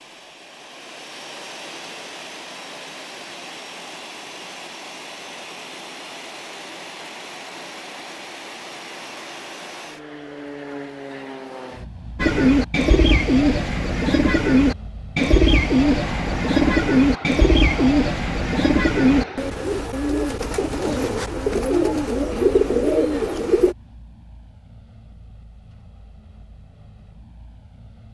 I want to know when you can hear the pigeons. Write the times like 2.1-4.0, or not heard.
12.2-23.8.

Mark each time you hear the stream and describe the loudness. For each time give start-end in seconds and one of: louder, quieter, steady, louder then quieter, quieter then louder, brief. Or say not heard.
not heard.